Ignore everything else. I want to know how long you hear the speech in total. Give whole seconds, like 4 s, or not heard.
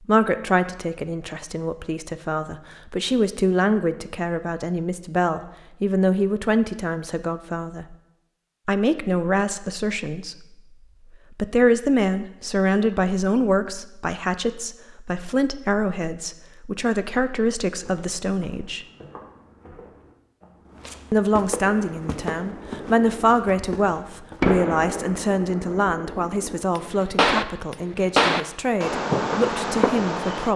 27 s.